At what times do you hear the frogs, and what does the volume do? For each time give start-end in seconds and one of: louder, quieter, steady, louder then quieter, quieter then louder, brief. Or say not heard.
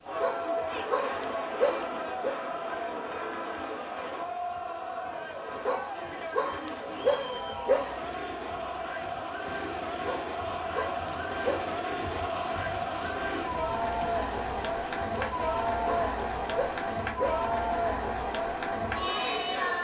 not heard.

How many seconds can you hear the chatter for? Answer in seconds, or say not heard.
20 s.